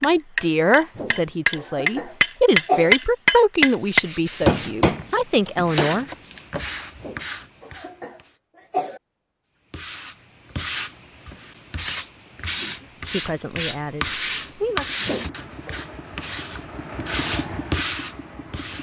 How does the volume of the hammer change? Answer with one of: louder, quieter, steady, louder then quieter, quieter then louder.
louder then quieter.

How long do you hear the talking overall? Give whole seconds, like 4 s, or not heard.
8 s.